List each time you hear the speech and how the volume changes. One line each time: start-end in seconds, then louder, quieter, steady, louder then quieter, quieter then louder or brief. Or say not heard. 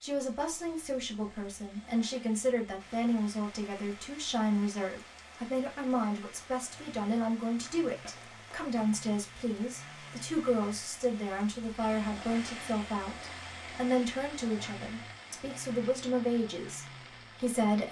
0.0-17.8 steady.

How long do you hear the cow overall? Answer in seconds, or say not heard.
not heard.